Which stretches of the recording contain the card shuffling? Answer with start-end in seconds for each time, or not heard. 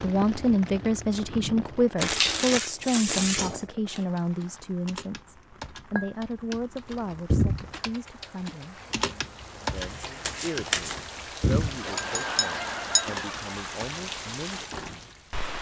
1.9-4.0, 9.8-11.0.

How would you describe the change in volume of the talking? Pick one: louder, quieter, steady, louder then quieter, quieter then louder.
quieter.